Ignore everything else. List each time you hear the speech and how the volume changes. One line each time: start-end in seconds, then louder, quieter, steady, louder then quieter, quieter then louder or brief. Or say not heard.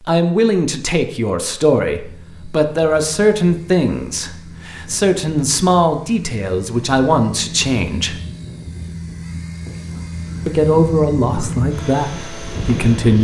0.1-8.2 steady
10.4-13.1 brief.